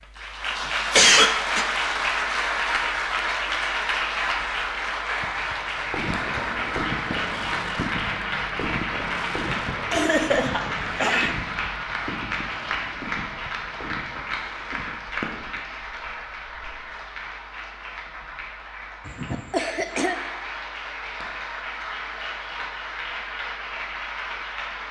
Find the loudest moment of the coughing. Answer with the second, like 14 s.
1 s.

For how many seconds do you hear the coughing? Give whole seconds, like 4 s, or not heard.
3 s.